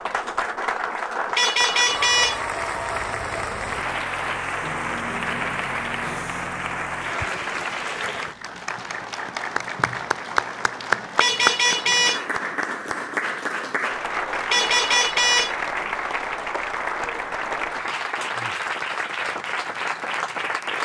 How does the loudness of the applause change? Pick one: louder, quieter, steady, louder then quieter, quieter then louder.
steady.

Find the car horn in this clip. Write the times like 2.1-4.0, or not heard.
1.4-2.4, 11.2-12.2, 14.5-15.6.